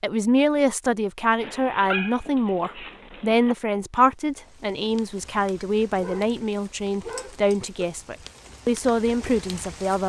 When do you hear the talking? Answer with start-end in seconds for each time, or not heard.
0.0-10.0.